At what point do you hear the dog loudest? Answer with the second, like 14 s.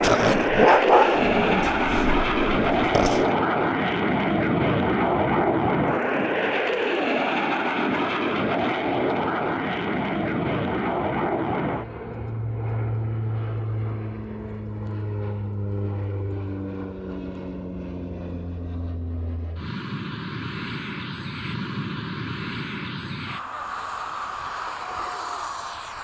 1 s.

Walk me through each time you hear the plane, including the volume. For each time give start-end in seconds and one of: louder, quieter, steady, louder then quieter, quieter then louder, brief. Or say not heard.
0.0-25.9 quieter.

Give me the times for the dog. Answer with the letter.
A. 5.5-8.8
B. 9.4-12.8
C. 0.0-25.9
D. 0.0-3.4
D.